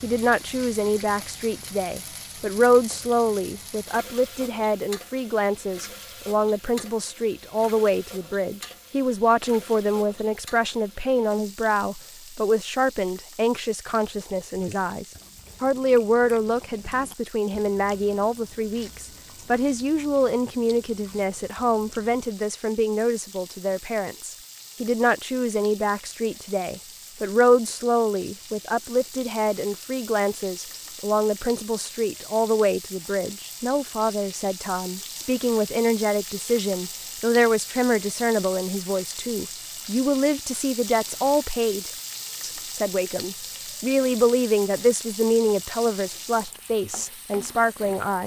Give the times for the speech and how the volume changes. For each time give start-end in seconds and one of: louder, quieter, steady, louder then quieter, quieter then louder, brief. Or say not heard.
0.0-48.2 steady.